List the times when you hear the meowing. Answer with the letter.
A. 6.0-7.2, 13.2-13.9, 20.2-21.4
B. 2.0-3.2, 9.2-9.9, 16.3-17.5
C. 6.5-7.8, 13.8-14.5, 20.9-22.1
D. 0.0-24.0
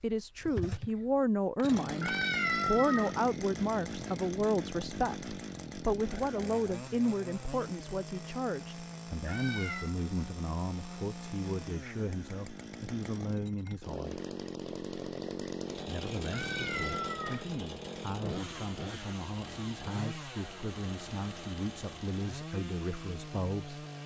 B.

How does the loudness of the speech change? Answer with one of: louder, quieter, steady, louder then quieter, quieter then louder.
quieter.